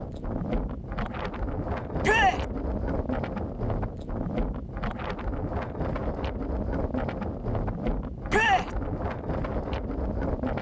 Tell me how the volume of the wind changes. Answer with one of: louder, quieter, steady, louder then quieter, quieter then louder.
steady.